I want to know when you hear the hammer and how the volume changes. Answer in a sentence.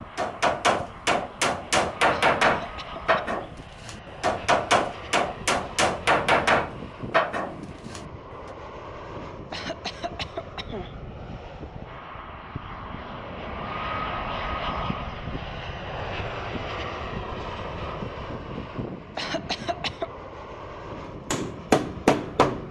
The hammer can be heard from 0.1 to 8.1 s, at a steady volume; and briefly from 21.1 to 22.6 s.